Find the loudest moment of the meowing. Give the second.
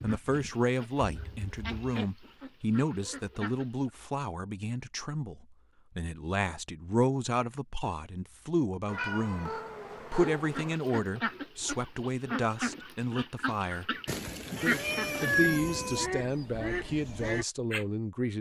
15 s.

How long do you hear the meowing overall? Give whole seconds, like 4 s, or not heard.
5 s.